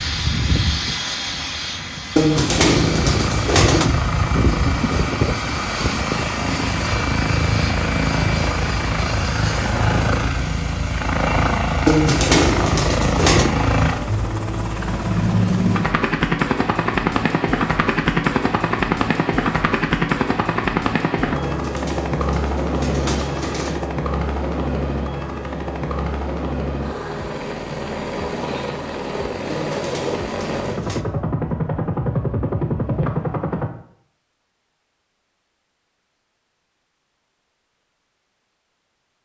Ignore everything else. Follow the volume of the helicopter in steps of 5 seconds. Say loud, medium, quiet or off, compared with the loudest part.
loud, loud, loud, loud, loud, medium, loud, off.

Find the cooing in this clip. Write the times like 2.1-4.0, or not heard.
2.1-3.9, 11.8-13.5, 21.4-23.9, 29.5-31.1.